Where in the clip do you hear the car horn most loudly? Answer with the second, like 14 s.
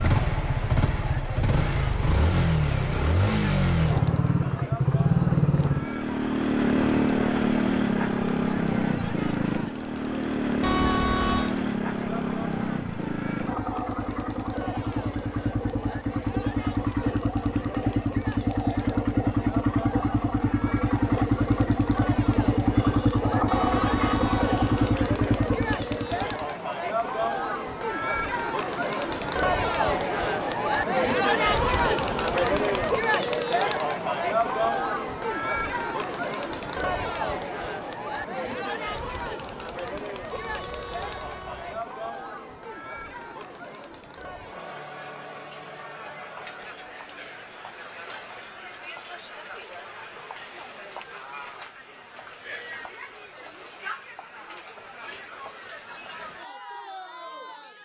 11 s.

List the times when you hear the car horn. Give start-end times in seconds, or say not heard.
10.6-11.6, 23.4-25.0, 40.3-41.9.